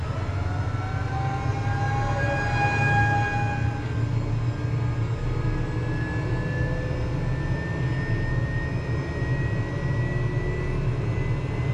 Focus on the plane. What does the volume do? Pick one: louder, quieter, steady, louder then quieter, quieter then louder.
steady.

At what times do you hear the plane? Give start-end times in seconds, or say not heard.
0.0-11.6.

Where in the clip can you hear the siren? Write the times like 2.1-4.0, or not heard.
0.0-3.9.